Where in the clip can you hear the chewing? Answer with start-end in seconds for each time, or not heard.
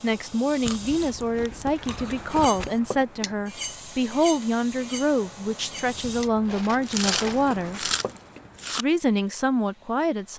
0.6-2.7, 6.8-8.8.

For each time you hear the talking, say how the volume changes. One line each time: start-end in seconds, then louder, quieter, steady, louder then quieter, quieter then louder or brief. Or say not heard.
0.0-7.9 steady
8.7-10.3 brief.